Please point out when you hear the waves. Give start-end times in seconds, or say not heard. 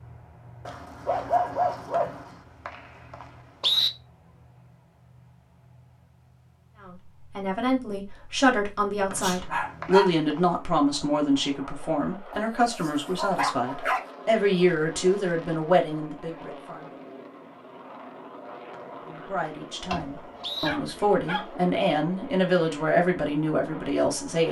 not heard.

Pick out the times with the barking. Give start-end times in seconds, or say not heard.
0.7-2.4, 9.2-10.2, 12.3-14.1, 19.9-21.4.